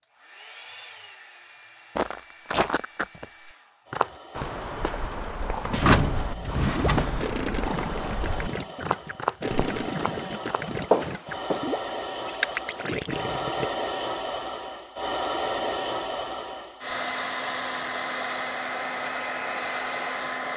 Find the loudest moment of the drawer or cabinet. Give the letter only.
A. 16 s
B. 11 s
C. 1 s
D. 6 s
D.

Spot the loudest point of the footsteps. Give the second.
11 s.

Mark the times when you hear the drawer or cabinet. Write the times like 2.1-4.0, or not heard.
5.7-7.2.